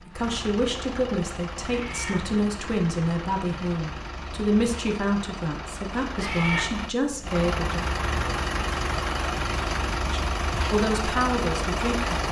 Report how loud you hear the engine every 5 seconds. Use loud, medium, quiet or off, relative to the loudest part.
medium, loud, loud.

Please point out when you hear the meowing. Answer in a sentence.
You can hear the meowing from 1.6 to 2.1 s and from 6.2 to 6.7 s.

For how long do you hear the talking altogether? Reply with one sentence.
You can hear the talking for 10 seconds altogether.